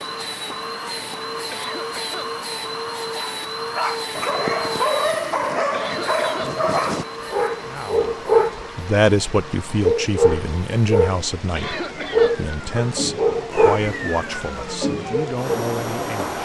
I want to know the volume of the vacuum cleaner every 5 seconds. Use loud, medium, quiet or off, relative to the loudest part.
loud, medium, loud, loud.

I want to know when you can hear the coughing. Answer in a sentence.
You can hear the coughing from 1.5 to 2.3 s, from 5.7 to 6.5 s and from 11.6 to 12.3 s.